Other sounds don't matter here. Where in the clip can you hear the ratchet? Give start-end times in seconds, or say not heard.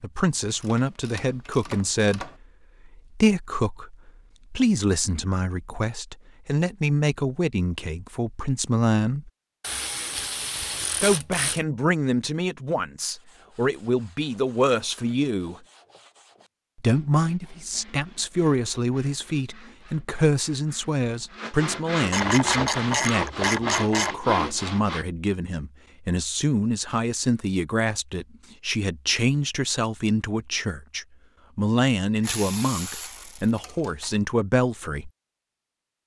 0.5-2.4, 9.6-11.7, 22.1-24.1, 32.2-34.1.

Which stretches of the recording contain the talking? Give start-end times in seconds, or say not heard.
0.0-9.3, 11.0-15.6, 16.8-35.1.